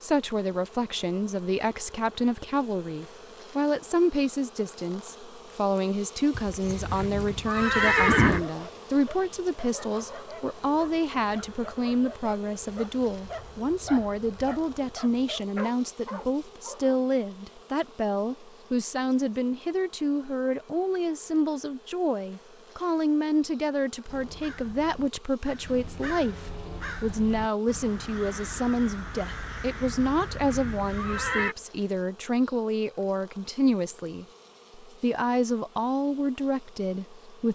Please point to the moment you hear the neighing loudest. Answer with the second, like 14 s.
8 s.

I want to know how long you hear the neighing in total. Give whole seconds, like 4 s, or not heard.
4 s.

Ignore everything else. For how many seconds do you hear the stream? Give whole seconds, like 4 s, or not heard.
not heard.